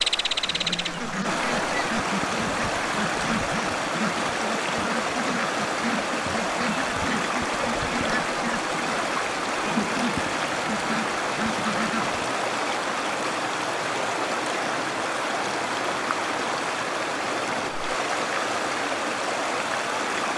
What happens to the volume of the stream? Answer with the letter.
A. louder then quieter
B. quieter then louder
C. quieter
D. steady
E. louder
D.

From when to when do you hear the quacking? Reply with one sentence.
You can hear the quacking from 0.4 to 12.2 s.